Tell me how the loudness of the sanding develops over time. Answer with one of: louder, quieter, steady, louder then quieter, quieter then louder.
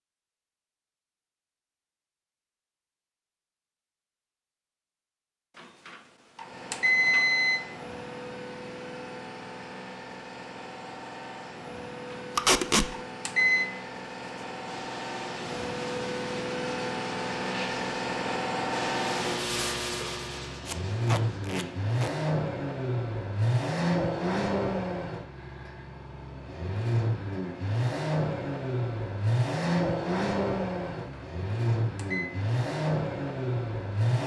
louder then quieter.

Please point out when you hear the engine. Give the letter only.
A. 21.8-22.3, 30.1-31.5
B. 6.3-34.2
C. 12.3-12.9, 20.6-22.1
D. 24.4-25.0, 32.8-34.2
B.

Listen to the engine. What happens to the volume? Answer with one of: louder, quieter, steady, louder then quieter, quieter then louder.
louder.